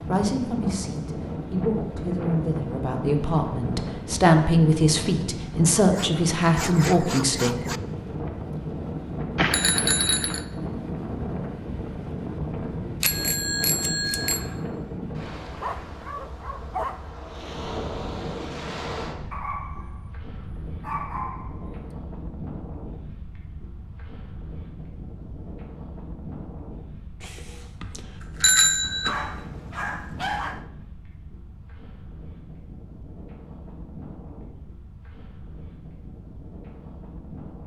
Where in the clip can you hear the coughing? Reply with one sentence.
The coughing can't be heard in this clip.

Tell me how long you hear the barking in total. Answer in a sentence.
The barking can be heard for 7 seconds in total.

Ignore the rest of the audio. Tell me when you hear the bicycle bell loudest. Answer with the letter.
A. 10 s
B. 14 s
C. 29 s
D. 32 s
C.